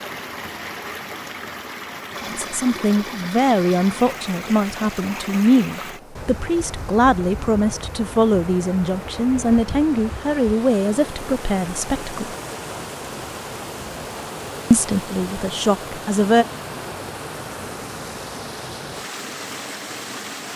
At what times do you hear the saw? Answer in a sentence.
The saw can't be heard in this clip.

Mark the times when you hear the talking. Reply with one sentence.
You can hear the talking from 2.2 to 12.3 s and from 14.7 to 16.4 s.